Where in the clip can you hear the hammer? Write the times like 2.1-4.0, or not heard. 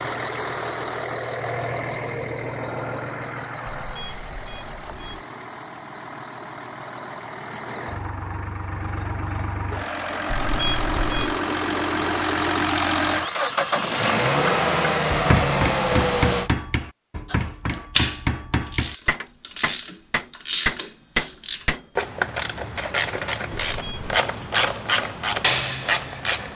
13.8-21.8.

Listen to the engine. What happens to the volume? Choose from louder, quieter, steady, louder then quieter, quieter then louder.
quieter then louder.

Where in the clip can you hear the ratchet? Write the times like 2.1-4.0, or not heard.
17.2-26.4.